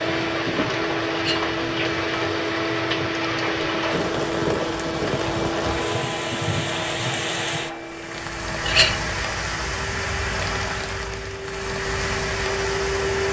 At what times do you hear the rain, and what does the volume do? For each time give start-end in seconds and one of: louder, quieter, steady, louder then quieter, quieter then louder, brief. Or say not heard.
0.0-13.2 steady.